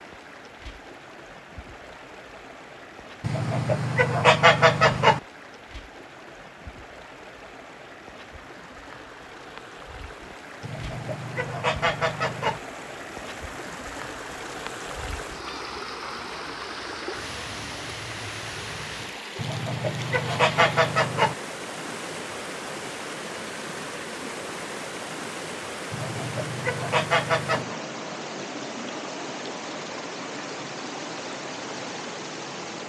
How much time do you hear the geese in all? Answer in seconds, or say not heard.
8 s.